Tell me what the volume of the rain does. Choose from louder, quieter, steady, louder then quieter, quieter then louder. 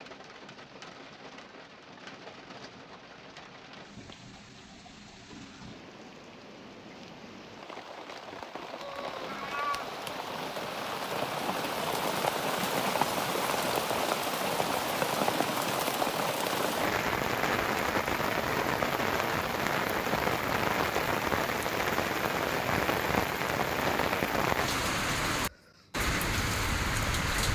louder.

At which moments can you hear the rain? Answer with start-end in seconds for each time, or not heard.
0.0-27.5.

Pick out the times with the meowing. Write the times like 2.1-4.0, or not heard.
8.8-10.2.